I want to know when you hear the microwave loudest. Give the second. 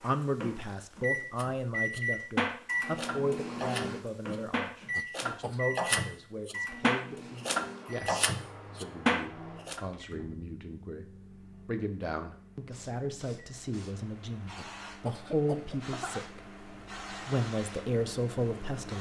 2 s.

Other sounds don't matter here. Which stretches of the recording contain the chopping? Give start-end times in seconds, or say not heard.
1.4-9.8.